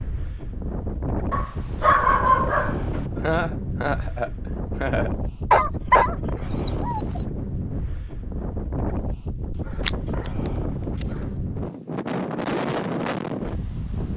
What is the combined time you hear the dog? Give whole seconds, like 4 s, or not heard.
5 s.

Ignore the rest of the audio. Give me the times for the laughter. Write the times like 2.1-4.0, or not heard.
3.1-5.1.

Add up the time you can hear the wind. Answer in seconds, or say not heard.
14 s.